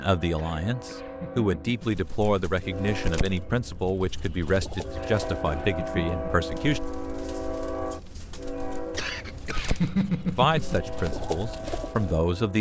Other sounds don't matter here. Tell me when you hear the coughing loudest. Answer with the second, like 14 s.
10 s.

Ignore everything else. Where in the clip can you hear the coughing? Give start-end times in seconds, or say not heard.
0.3-1.9, 5.0-6.7, 8.9-10.8.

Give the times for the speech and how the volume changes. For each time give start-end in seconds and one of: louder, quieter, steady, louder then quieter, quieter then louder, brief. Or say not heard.
0.0-6.8 steady
10.3-12.5 brief.